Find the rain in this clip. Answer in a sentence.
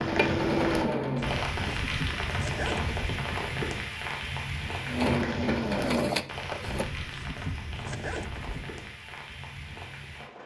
You can hear the rain from 0.0 to 10.4 s.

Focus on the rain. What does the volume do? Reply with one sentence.
The volume of the rain goes down.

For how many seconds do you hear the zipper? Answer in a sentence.
The zipper can be heard for 4 seconds in total.